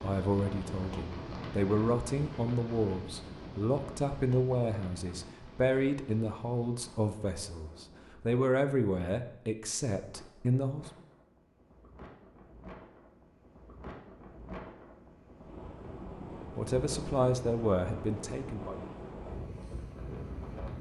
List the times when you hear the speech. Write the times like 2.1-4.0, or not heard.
0.0-10.9, 16.6-18.8.